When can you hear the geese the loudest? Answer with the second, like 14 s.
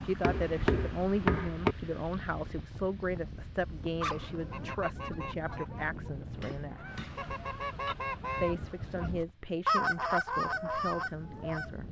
10 s.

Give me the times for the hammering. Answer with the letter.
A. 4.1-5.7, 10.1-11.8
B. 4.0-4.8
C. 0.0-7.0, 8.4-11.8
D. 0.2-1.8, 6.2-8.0
D.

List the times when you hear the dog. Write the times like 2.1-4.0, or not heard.
4.0-4.8.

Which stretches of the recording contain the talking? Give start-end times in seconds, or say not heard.
0.0-7.0, 8.4-11.8.